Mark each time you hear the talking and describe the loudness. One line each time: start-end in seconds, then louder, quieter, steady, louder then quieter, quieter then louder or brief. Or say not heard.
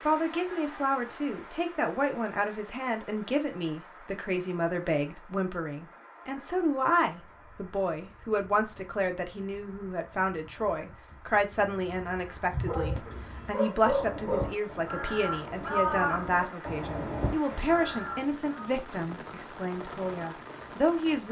0.1-21.2 steady.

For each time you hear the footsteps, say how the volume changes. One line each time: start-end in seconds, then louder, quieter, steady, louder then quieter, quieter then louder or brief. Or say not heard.
not heard.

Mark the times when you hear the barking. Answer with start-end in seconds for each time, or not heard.
12.5-14.5.